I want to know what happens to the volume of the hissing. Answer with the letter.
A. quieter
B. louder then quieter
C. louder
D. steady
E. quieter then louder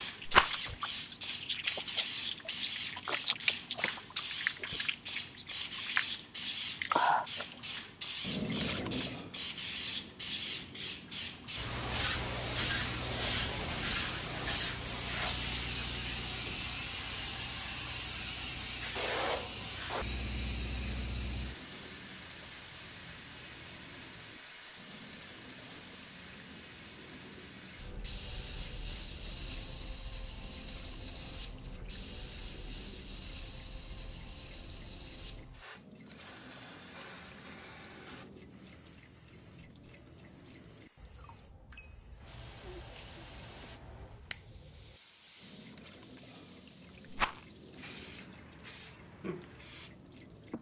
A.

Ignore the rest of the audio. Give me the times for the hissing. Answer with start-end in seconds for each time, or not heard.
0.0-50.5.